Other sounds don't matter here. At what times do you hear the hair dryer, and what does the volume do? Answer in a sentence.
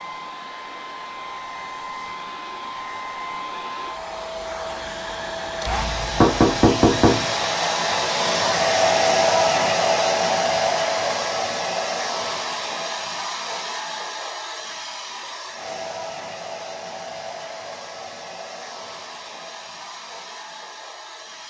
The hair dryer can be heard from 0.0 to 21.4 s, getting louder then quieter.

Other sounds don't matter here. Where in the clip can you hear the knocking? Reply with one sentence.
The knocking can be heard from 5.7 to 7.2 s.